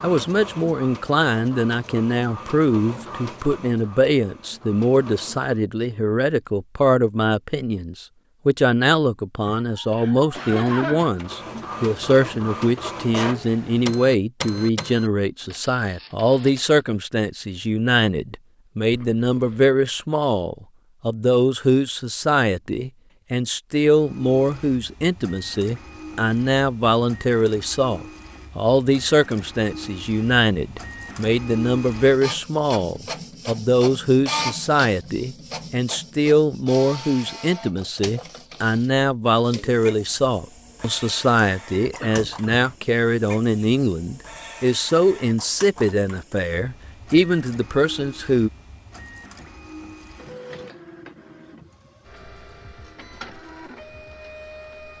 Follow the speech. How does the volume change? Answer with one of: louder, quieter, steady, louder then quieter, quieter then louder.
steady.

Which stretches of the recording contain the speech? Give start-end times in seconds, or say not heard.
0.0-48.5.